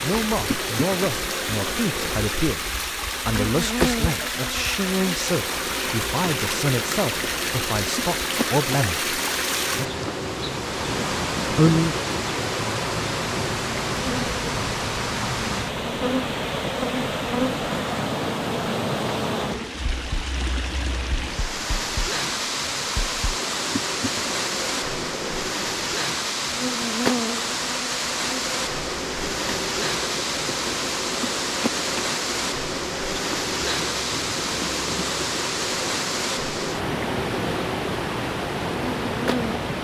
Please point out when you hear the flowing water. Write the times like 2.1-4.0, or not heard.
0.0-39.8.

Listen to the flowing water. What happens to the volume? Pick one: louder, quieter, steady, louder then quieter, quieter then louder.
steady.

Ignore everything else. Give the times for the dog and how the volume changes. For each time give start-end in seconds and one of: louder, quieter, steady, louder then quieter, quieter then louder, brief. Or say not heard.
not heard.